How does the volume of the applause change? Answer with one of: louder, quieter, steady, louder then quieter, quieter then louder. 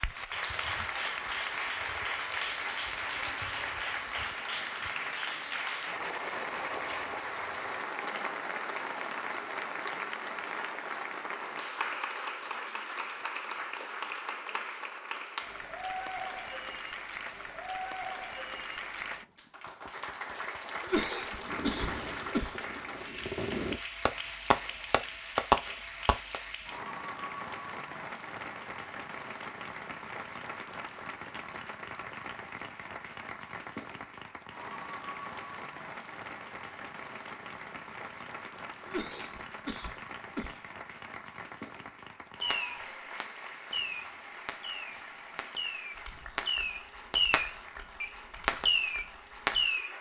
quieter.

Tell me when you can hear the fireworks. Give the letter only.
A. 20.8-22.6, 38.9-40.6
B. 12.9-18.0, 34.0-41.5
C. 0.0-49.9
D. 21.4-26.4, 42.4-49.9
D.